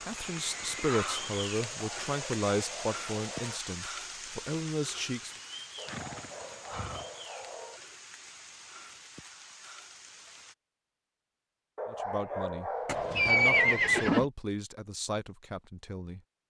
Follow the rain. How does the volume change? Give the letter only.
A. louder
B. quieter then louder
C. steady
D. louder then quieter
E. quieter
E.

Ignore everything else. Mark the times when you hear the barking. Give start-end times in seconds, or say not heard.
1.6-3.6, 5.8-7.8, 11.8-13.8.